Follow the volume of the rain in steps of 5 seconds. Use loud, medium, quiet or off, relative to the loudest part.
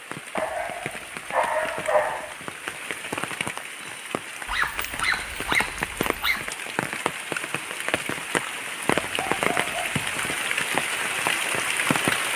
medium, loud, loud.